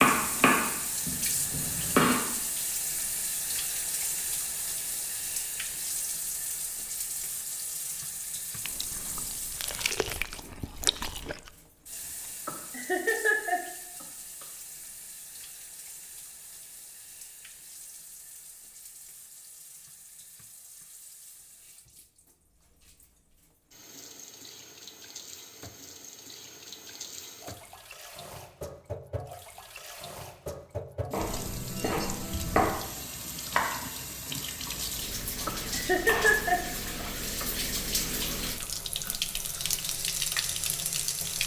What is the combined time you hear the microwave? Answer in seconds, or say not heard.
not heard.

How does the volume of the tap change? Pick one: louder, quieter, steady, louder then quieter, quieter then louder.
quieter then louder.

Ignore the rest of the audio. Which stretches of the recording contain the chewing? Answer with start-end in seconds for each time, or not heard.
8.7-11.5.